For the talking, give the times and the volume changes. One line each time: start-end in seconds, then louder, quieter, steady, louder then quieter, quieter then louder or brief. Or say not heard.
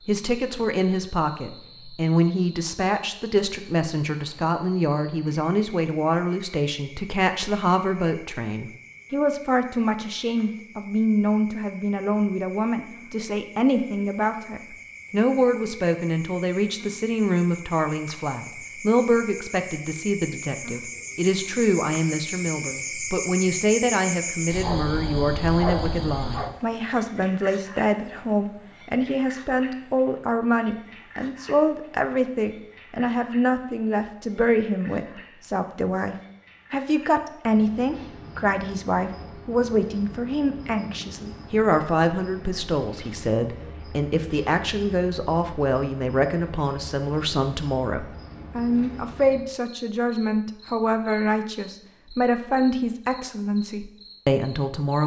0.1-55.0 steady.